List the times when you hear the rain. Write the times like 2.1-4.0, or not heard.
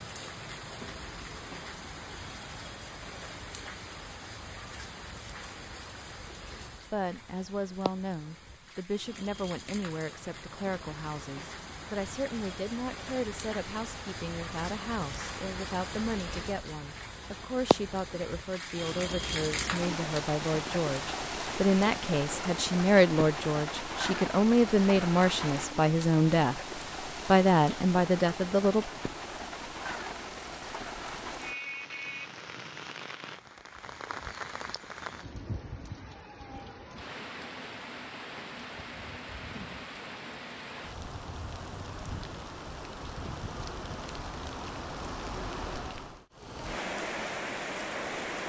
0.0-48.4.